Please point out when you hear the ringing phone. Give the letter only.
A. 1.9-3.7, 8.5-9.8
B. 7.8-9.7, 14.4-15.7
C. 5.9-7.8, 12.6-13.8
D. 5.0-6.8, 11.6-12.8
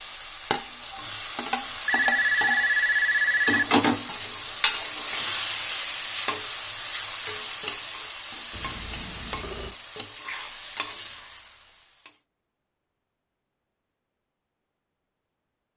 A.